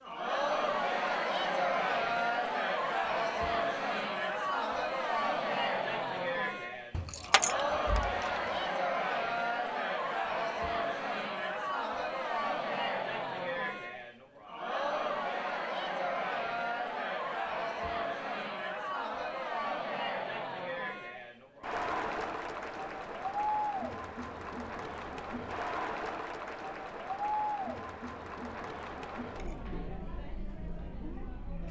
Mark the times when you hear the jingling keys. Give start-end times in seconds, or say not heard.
6.9-8.5.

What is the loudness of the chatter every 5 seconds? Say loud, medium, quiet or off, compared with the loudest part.
loud, loud, loud, loud, medium, medium, quiet.